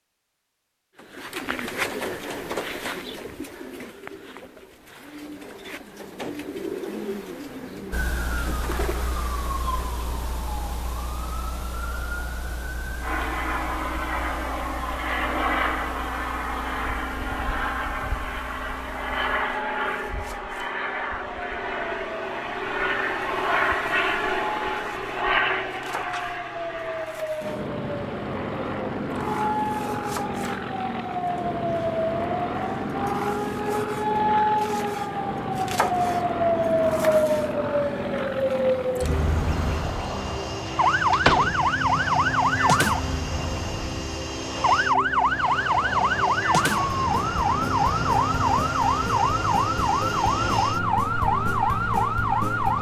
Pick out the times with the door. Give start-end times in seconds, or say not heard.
40.6-41.6.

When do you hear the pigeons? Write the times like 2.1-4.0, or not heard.
0.9-10.3.